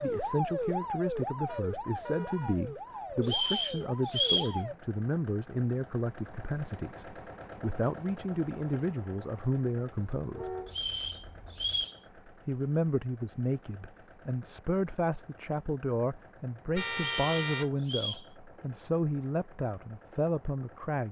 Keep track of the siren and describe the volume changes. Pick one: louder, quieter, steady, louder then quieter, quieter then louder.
quieter.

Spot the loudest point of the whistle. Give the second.
4 s.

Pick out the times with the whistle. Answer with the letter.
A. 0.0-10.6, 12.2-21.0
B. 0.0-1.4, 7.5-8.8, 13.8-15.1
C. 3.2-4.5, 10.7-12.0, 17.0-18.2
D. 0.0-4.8
C.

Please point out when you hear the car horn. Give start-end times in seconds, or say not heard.
1.4-2.5, 10.3-11.8, 16.8-17.8.